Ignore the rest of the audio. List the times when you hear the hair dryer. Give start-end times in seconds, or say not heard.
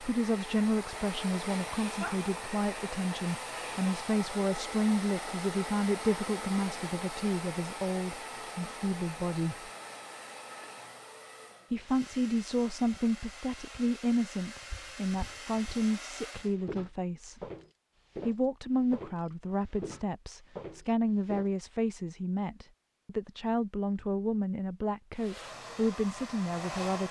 0.0-16.6, 25.1-27.0.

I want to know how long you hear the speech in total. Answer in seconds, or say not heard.
24 s.